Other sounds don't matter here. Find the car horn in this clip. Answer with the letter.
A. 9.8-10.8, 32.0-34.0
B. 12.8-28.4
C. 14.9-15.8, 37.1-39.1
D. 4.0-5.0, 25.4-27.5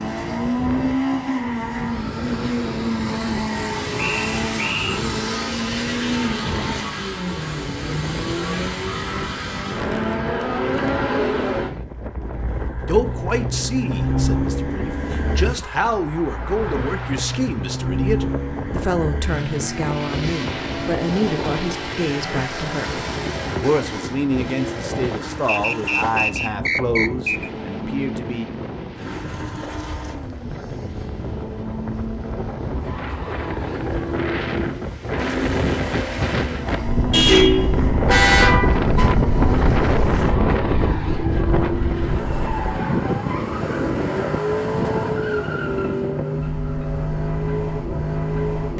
C.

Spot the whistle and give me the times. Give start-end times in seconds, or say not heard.
4.0-5.0, 25.4-27.5.